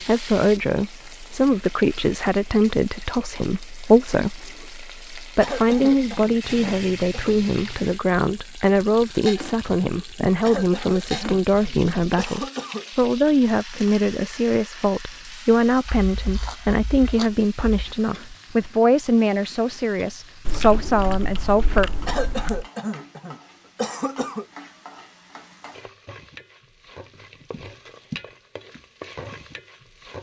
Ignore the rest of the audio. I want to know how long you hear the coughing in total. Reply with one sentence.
You can hear the coughing for 7 seconds altogether.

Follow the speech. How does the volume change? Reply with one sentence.
The loudness of the speech stays about the same.